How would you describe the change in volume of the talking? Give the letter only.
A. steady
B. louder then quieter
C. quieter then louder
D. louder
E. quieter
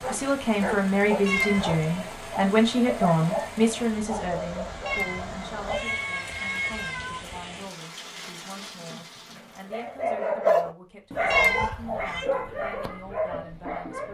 E.